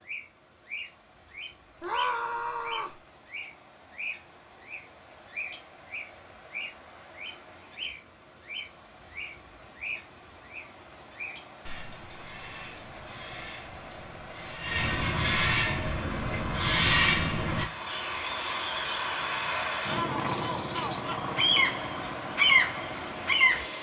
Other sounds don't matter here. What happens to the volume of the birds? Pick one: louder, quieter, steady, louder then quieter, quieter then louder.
louder.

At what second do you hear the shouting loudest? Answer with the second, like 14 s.
2 s.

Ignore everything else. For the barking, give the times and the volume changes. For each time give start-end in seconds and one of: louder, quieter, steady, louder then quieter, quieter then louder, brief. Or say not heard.
not heard.